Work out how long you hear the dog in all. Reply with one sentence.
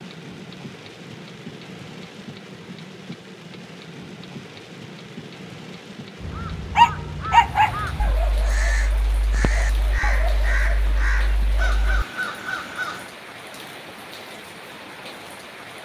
The dog can be heard for 5 seconds in total.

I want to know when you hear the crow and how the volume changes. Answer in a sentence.
You can hear the crow from 6.2 to 13.1 s, at a steady volume.